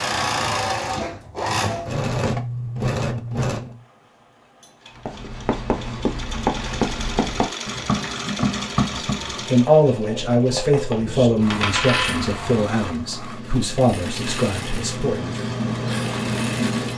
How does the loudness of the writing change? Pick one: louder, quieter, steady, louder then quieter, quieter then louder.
quieter then louder.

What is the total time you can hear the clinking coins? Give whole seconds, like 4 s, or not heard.
2 s.